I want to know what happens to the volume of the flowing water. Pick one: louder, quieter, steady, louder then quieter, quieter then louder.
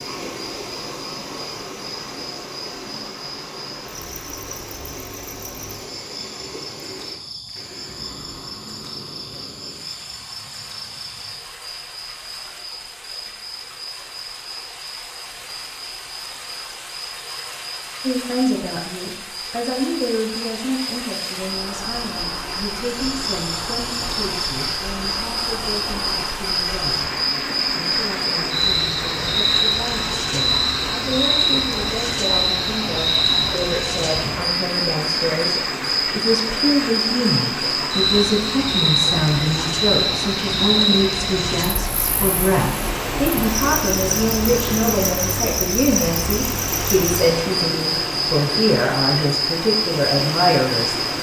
louder.